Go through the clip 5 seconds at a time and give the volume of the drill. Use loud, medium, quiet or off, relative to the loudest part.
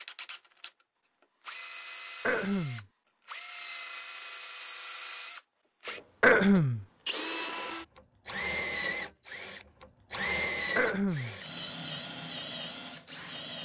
medium, loud, loud.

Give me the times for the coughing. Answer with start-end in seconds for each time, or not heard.
2.2-2.9, 6.2-6.8, 10.8-11.3.